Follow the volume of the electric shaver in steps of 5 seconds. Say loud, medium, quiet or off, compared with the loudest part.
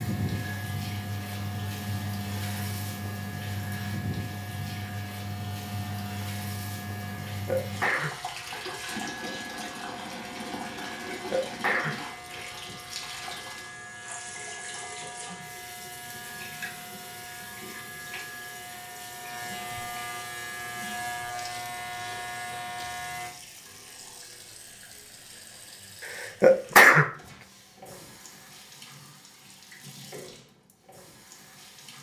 medium, medium, medium, medium, loud, off, off.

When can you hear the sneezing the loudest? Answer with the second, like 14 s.
27 s.